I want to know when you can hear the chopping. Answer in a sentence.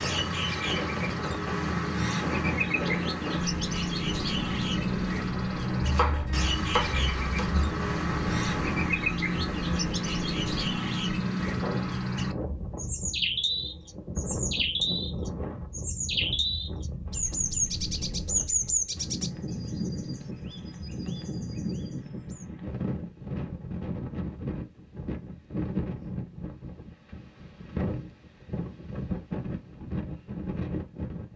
The chopping can be heard from 5.8 to 7.7 s.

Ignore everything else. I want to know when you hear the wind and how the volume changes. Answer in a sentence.
The wind can be heard from 0.0 to 31.3 s, at a steady volume.